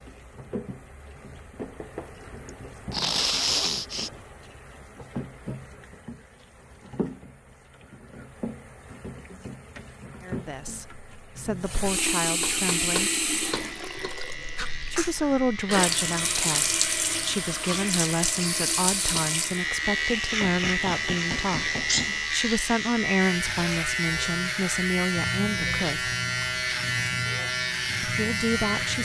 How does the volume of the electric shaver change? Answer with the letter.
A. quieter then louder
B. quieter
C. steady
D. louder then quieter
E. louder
E.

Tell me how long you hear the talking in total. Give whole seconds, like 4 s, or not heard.
15 s.